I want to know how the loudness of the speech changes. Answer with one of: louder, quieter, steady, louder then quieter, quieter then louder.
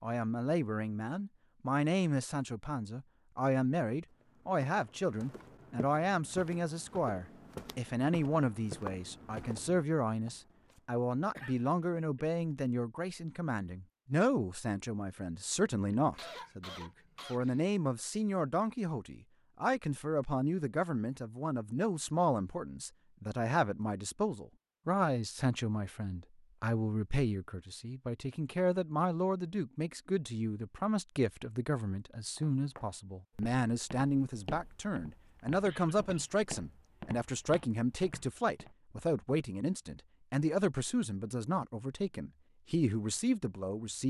steady.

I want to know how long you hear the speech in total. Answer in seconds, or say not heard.
44 s.